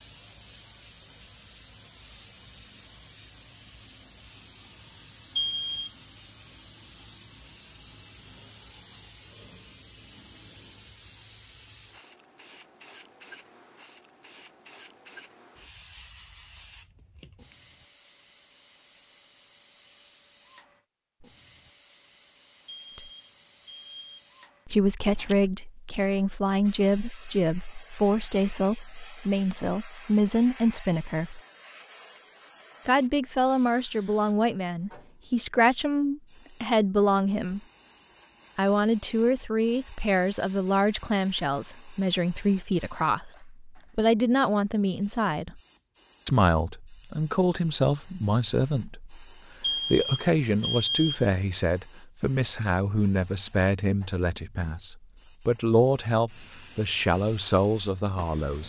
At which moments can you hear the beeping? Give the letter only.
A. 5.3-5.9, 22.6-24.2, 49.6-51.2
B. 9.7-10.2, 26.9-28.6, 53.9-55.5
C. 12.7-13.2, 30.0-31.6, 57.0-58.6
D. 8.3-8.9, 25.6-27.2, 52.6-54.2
A.